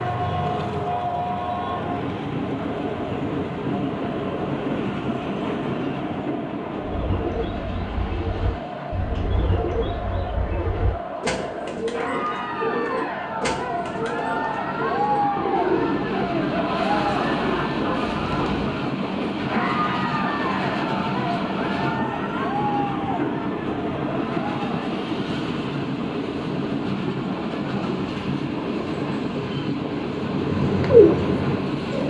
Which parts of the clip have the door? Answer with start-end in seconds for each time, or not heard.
not heard.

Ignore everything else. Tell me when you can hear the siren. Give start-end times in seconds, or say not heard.
not heard.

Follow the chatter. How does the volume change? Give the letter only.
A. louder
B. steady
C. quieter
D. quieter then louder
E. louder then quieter
A.